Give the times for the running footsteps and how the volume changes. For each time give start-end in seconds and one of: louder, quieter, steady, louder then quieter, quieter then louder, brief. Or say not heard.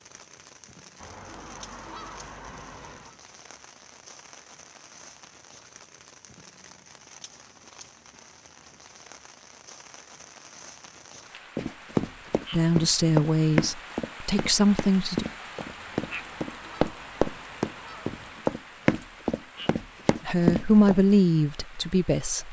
11.6-21.0 quieter then louder.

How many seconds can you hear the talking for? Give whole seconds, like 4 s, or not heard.
5 s.